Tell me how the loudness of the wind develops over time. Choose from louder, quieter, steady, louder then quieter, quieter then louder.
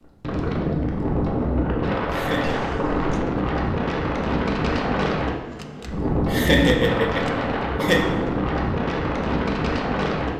steady.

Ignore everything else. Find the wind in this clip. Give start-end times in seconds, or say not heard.
0.0-10.3.